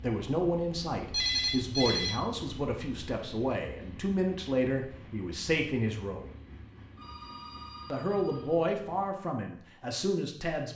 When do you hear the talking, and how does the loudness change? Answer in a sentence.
You can hear the talking from 0.0 to 6.2 s, at a steady volume; and briefly from 7.9 to 10.7 s.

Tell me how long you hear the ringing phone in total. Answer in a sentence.
You can hear the ringing phone for 3 seconds altogether.